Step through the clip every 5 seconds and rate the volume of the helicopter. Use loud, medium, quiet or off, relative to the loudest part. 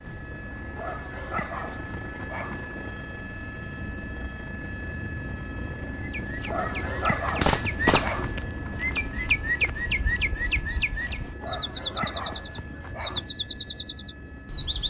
loud, loud, medium.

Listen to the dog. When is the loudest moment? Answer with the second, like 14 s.
7 s.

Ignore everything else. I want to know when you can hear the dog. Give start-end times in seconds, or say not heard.
0.8-2.6, 6.5-8.4, 11.4-13.3.